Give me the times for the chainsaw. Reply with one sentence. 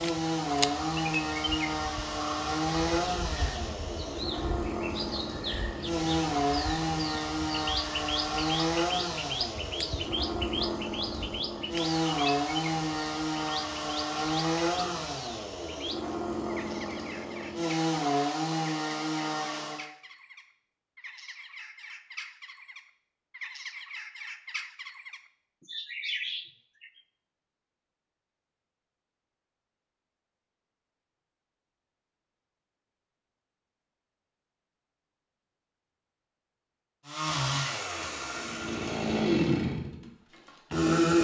You can hear the chainsaw from 0.0 to 19.9 s and from 37.0 to 41.1 s.